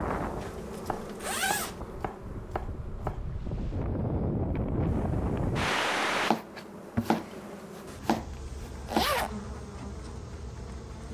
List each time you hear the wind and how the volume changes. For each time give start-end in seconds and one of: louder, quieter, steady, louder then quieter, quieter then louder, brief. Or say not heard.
0.0-6.3 louder.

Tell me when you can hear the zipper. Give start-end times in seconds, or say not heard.
0.2-1.8, 8.8-9.4.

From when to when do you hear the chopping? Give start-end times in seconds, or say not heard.
0.8-3.2, 6.2-9.1.